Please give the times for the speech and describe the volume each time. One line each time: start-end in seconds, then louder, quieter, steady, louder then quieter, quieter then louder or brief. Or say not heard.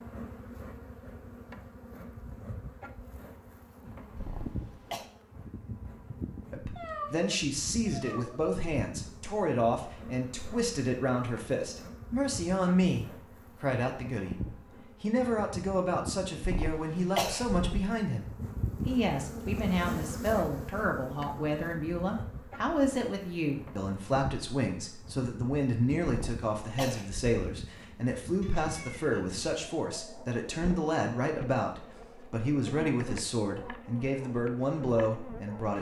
6.5-35.7 steady.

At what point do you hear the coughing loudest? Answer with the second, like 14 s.
17 s.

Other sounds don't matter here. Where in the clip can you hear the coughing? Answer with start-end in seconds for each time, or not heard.
4.2-5.0, 16.4-17.9, 26.1-27.3.